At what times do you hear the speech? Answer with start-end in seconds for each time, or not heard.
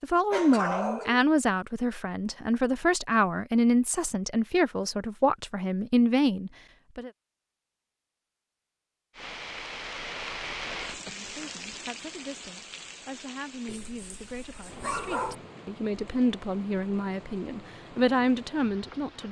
0.0-7.1, 11.1-19.2.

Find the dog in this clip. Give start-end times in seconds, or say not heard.
0.3-1.2, 13.7-15.3.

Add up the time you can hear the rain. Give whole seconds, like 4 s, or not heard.
10 s.